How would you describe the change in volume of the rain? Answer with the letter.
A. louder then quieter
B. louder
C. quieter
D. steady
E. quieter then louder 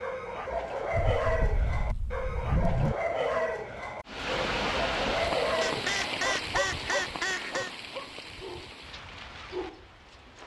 C.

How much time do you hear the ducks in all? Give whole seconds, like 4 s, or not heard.
4 s.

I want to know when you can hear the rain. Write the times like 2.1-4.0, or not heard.
4.0-10.4.